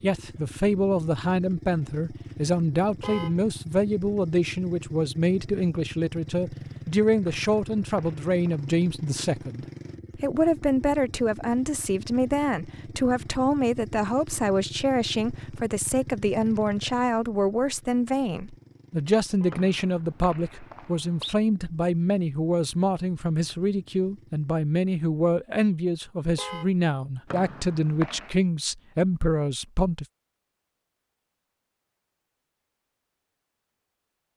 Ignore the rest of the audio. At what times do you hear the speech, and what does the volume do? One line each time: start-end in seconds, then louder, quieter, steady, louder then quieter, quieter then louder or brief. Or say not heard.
0.0-30.1 steady.